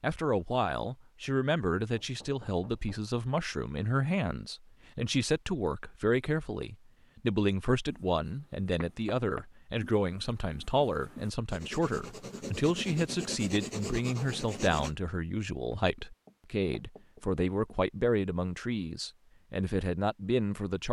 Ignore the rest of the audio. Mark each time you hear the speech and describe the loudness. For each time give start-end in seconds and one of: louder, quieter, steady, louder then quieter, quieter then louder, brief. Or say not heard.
0.0-20.8 steady.